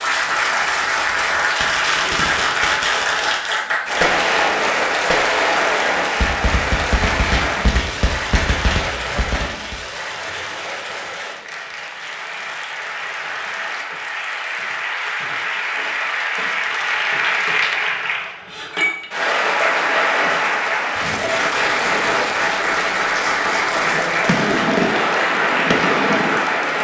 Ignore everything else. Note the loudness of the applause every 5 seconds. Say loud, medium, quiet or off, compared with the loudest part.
loud, loud, medium, loud, loud, loud.